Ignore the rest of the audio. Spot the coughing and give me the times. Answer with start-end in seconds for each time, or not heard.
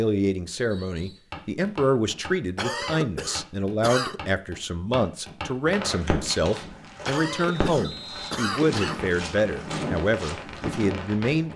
2.5-4.2, 7.0-9.1.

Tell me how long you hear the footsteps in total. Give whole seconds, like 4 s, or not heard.
10 s.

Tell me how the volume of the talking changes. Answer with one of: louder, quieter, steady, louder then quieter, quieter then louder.
steady.